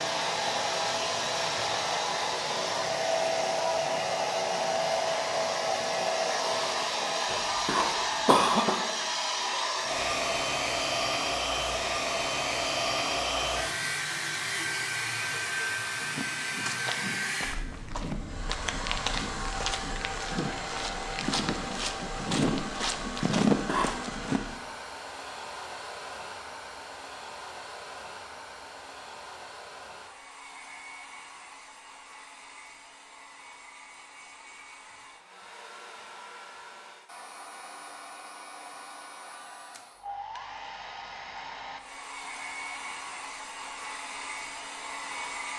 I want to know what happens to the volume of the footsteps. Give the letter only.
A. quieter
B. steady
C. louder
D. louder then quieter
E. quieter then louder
C.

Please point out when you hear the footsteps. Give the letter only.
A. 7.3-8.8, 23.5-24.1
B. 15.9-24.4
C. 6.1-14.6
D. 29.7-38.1
B.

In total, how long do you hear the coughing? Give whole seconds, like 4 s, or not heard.
2 s.